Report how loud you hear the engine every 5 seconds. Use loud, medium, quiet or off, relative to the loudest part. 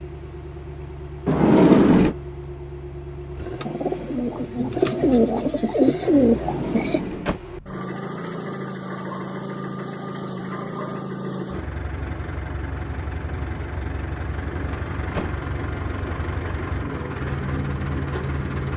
medium, loud, loud, loud.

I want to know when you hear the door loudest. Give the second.
2 s.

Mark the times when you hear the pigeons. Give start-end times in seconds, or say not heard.
3.4-7.0.